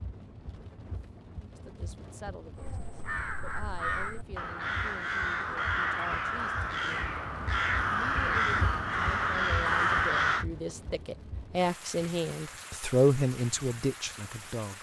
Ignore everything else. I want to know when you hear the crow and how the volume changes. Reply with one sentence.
The crow can be heard from 2.5 to 10.4 s, getting louder.